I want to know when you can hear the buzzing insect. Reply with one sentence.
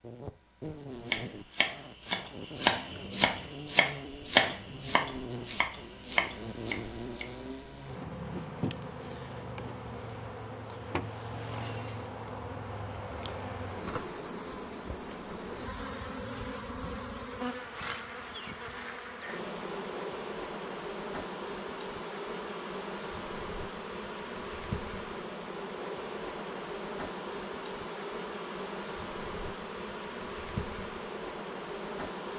You can hear the buzzing insect from 0.0 to 32.3 s.